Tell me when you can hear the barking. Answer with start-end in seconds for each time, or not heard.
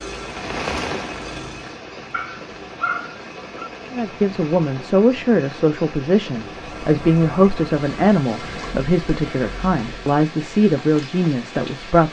2.1-3.7.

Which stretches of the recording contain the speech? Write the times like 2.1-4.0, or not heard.
3.9-12.0.